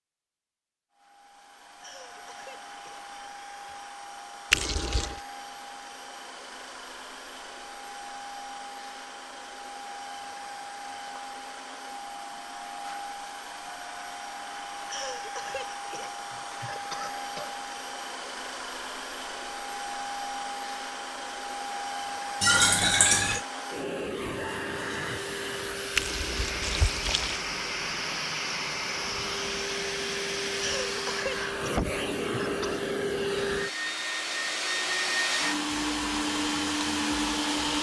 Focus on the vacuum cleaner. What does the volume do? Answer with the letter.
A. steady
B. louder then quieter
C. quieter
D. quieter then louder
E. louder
E.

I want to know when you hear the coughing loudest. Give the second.
31 s.